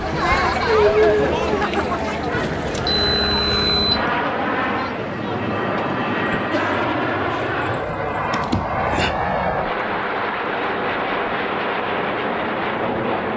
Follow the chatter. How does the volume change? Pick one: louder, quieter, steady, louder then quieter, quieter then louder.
quieter.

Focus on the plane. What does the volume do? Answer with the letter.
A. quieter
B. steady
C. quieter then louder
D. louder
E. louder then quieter
D.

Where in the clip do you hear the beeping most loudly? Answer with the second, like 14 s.
4 s.